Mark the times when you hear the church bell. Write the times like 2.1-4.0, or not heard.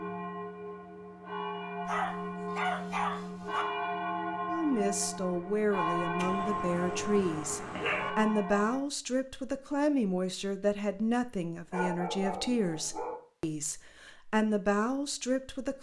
0.0-8.8.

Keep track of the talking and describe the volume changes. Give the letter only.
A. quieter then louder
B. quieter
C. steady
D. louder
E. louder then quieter
C.